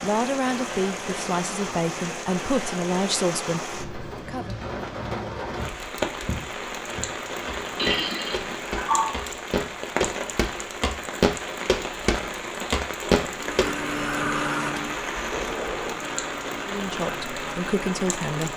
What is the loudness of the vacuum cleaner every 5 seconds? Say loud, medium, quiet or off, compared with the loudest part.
off, off, loud, medium.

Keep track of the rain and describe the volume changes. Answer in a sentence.
The volume of the rain stays about the same.